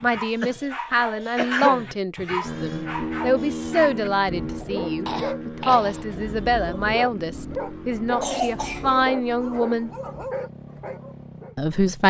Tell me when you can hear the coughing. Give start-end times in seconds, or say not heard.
0.4-1.9, 5.0-6.2, 8.2-8.9.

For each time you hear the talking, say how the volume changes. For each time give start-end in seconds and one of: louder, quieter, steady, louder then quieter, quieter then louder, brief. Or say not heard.
0.0-9.9 steady
11.6-12.0 brief.